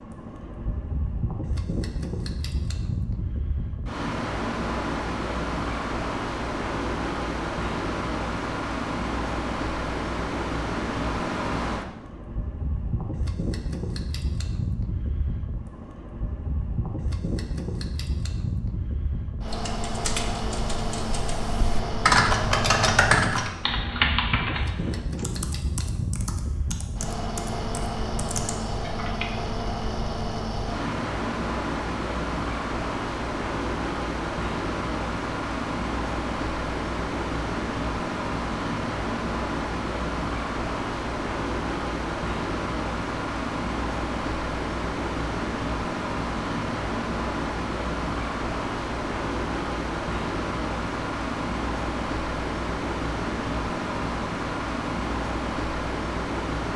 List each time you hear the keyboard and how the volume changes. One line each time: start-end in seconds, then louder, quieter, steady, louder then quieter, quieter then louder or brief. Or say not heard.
19.4-29.4 louder then quieter.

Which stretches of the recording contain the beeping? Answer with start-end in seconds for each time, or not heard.
not heard.